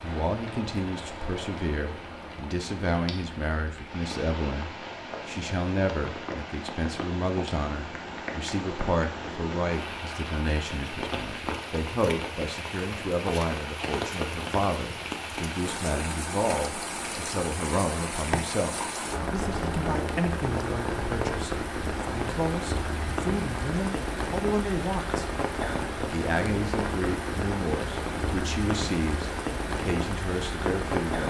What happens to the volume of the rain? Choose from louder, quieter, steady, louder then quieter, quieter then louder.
louder.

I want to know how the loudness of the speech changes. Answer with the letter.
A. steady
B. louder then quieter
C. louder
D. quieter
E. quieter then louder
A.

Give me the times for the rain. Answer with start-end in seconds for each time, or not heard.
0.0-31.2.